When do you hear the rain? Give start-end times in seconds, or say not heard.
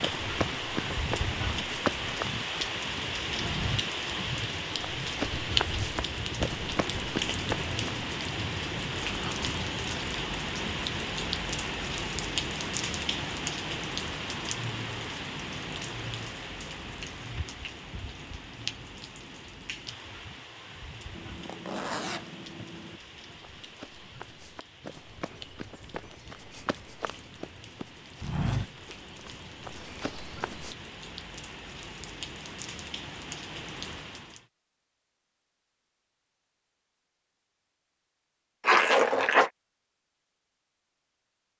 0.0-34.5.